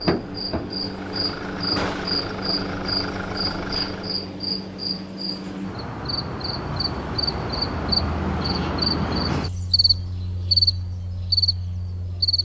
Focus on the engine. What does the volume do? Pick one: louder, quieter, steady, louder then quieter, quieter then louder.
steady.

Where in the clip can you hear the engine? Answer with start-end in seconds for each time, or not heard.
0.0-4.2.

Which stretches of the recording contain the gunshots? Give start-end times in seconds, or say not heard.
1.8-2.2.